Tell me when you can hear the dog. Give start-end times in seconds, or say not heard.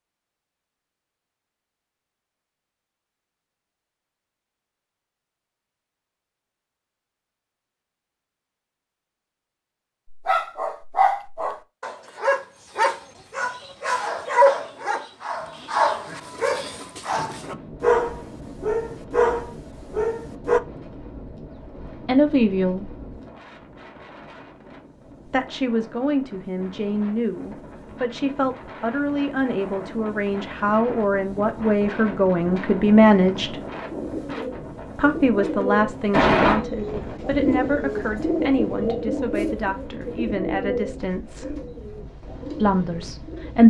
10.1-20.6.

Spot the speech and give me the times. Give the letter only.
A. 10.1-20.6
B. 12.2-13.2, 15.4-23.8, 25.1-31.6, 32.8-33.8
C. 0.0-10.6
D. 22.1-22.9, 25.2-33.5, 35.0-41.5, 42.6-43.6
D.